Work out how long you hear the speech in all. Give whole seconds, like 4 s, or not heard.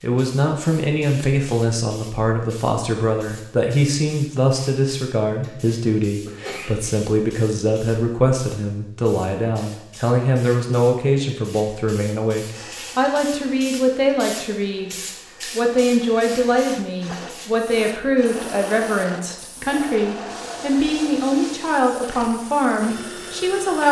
24 s.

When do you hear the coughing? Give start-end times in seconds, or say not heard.
6.2-7.0.